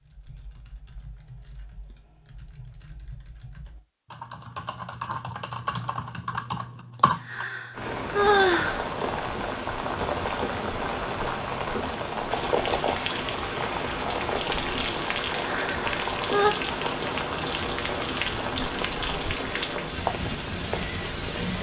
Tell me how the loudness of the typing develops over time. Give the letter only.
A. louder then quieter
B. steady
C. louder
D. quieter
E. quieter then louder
C.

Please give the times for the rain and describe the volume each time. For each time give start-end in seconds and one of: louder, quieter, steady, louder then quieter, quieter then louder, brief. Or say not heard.
7.7-21.5 steady.